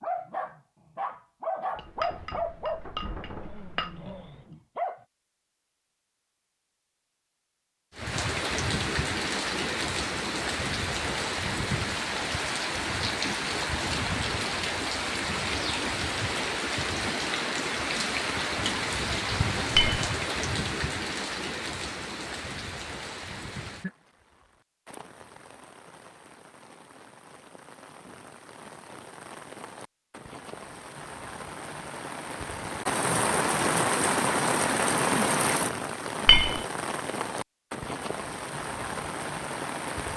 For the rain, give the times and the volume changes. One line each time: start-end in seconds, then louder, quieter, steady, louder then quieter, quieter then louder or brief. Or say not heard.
8.0-40.1 quieter then louder.